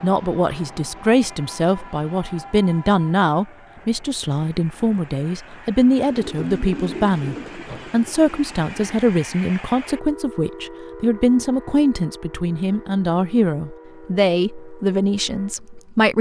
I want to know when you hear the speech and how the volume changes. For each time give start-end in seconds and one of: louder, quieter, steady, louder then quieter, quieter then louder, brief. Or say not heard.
0.0-16.1 steady.